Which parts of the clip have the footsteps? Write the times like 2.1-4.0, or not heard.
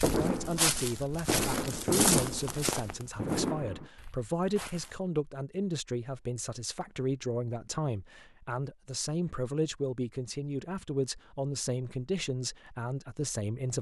0.0-5.0.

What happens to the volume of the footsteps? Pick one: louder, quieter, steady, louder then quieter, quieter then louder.
quieter.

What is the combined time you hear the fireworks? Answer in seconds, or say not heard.
4 s.